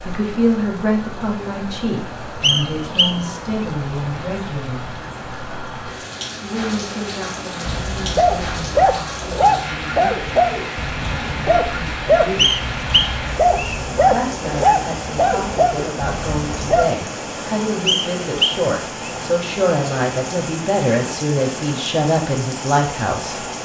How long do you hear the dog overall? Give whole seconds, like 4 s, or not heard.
9 s.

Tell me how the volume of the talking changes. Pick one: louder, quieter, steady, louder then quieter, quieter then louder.
quieter then louder.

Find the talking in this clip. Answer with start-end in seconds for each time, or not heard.
0.1-4.9, 6.4-12.6, 14.1-23.4.